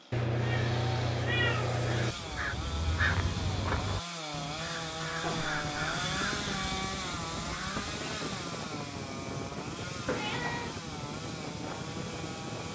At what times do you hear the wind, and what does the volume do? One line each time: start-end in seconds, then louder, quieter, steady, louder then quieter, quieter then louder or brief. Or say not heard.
5.7-12.7 steady.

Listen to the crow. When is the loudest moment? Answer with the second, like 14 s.
3 s.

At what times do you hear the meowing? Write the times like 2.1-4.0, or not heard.
0.1-2.1, 5.2-6.0, 10.1-10.8.